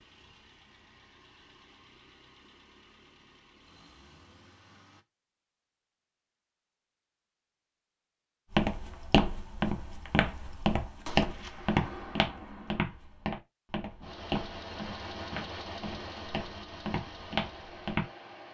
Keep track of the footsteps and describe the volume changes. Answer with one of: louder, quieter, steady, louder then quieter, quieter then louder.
quieter.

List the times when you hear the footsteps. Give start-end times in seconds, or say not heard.
8.5-18.1.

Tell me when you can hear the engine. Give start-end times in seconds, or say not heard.
0.0-5.0, 14.0-18.4.